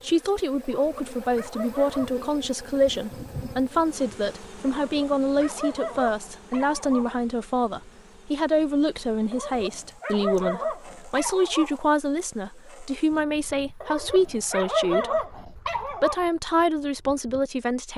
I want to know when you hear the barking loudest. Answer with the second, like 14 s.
15 s.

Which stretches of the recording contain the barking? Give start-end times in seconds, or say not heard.
0.8-2.2, 4.8-7.2, 9.3-11.8, 13.8-16.2.